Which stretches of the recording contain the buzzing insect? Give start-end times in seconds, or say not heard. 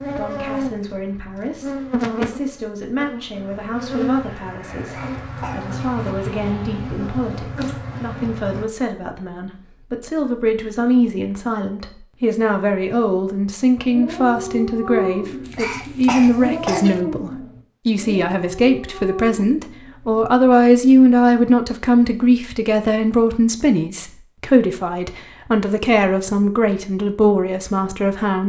0.0-8.7.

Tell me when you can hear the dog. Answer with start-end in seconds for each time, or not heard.
13.8-20.2.